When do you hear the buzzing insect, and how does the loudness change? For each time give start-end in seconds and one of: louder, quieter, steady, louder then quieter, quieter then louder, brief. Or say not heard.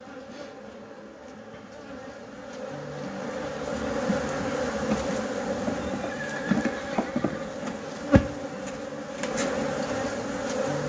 0.0-10.8 louder.